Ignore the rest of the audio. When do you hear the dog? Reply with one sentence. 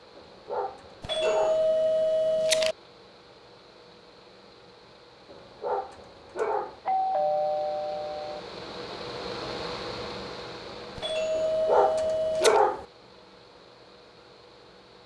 You can hear the dog from 0.1 to 1.6 s, from 5.3 to 6.8 s and from 11.3 to 12.8 s.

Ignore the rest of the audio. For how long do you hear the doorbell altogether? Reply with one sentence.
The doorbell can be heard for 5 seconds in total.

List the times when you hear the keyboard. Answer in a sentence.
You can't hear the keyboard here.